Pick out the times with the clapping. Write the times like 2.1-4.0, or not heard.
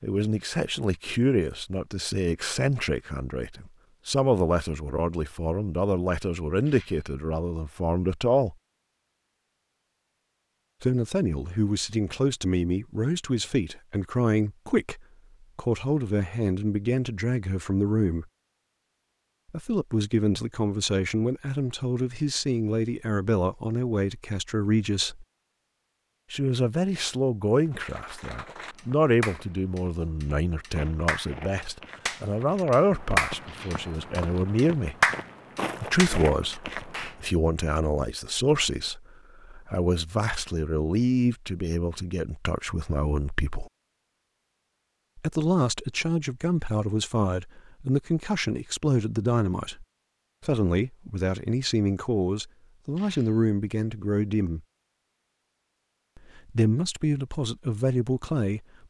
27.7-37.1.